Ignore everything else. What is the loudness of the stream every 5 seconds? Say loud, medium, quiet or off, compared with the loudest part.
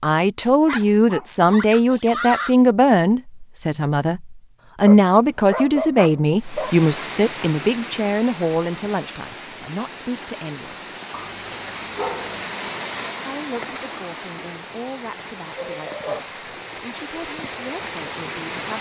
off, loud, loud, loud.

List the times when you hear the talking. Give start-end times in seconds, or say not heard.
0.0-10.8, 13.2-18.7.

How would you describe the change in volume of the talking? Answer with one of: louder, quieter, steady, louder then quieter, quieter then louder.
quieter.